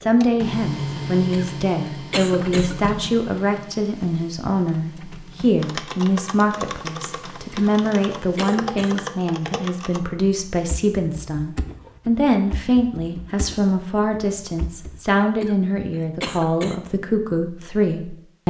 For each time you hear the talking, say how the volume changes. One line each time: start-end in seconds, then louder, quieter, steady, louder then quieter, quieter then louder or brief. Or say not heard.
0.0-18.4 steady.